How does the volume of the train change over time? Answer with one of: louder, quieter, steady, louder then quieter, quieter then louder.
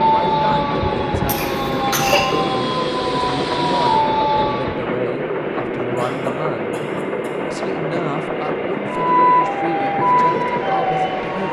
steady.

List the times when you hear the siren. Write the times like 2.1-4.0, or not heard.
0.0-4.8, 8.9-11.4.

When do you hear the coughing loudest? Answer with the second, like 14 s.
2 s.